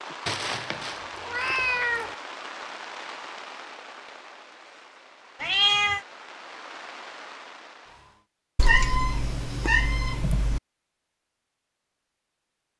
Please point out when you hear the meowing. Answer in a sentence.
You can hear the meowing from 0.2 to 2.1 s, from 5.4 to 6.0 s and from 8.6 to 10.6 s.